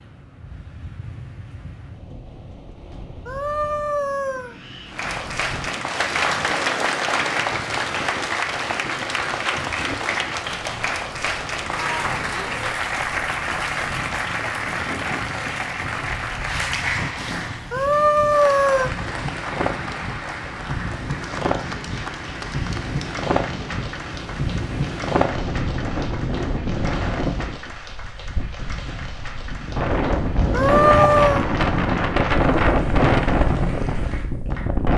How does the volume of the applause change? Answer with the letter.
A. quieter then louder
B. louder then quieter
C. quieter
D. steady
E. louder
C.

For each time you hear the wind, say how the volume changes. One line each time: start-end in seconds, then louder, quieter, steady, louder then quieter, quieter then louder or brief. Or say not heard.
0.0-34.9 louder.